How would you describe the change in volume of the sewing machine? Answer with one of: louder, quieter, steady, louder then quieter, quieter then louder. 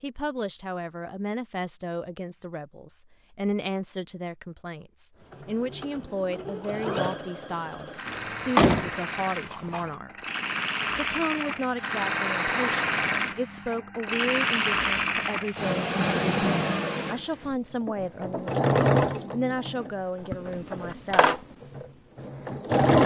louder then quieter.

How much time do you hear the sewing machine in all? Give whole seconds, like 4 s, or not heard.
18 s.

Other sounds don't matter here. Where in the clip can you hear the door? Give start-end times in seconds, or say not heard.
8.1-9.9.